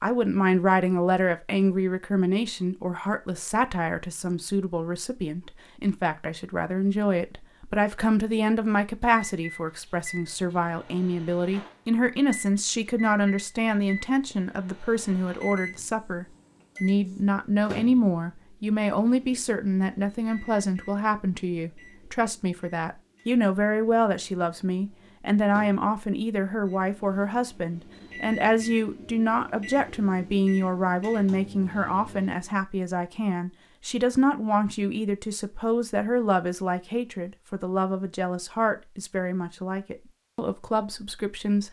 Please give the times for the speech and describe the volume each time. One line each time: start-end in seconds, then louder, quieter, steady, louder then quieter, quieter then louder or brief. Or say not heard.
0.0-41.6 steady.